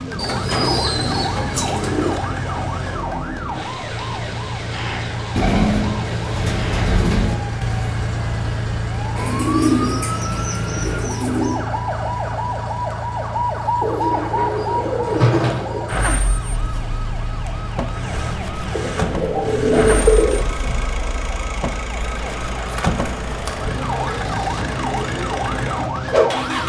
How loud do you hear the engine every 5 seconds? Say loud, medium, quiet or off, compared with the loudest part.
medium, loud, medium, medium, medium, loud.